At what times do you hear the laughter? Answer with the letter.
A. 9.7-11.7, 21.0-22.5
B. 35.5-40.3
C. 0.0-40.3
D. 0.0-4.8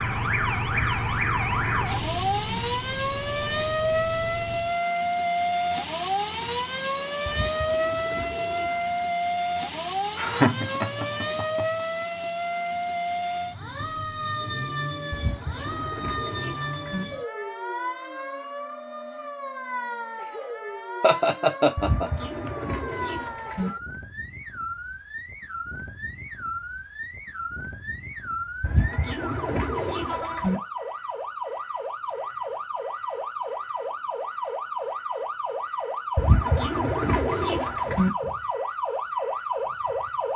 A.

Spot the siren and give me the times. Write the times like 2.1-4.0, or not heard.
0.0-40.3.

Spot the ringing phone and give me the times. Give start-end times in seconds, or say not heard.
not heard.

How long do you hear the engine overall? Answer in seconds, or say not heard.
5 s.